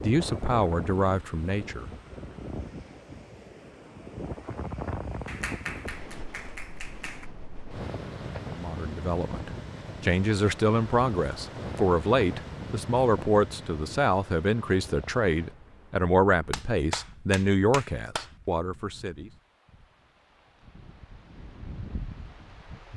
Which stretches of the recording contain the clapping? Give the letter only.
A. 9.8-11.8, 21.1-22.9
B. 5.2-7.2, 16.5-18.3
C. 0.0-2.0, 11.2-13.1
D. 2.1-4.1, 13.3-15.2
B.